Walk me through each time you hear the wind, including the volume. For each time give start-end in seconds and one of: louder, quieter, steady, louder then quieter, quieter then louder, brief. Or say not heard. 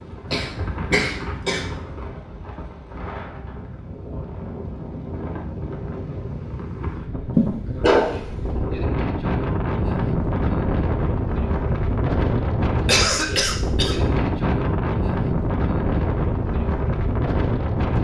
0.0-17.9 louder.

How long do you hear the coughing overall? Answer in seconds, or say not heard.
3 s.